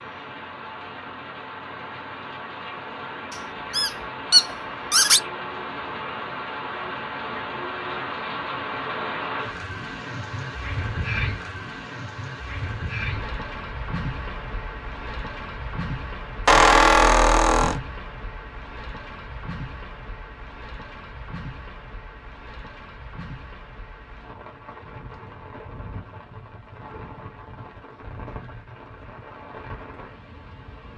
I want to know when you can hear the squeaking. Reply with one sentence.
The squeaking can be heard from 3.3 to 5.2 s and from 16.4 to 17.8 s.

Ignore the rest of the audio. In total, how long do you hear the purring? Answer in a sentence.
You can't hear the purring here.